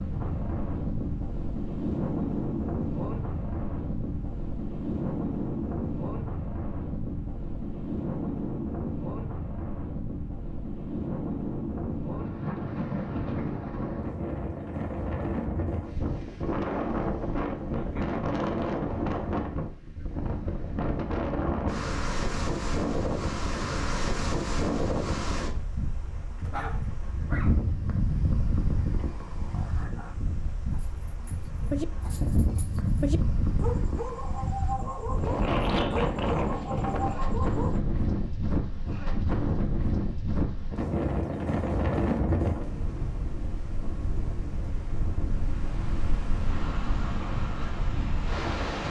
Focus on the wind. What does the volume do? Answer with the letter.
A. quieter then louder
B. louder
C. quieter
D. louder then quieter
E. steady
E.